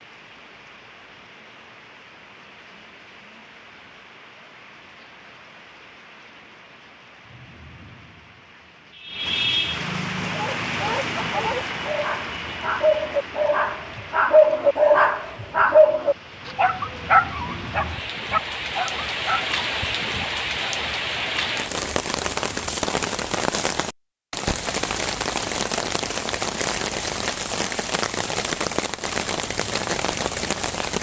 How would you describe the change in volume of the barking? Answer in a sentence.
The loudness of the barking goes up, then down.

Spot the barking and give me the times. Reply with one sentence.
You can hear the barking from 10.2 to 19.5 s.